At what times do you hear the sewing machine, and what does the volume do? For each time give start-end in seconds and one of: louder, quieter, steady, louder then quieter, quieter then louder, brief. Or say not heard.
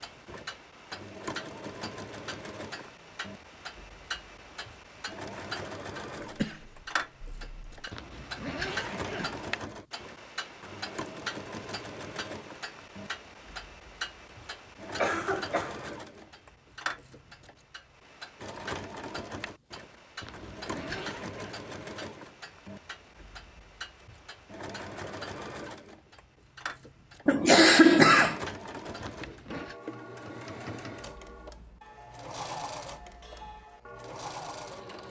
0.0-35.0 steady.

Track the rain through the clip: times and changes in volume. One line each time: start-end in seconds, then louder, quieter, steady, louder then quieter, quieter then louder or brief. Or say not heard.
not heard.